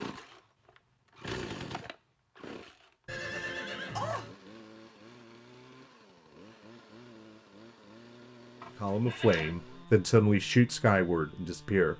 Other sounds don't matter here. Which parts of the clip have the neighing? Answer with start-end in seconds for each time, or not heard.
3.0-4.3, 8.6-9.6.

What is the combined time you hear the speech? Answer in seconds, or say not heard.
3 s.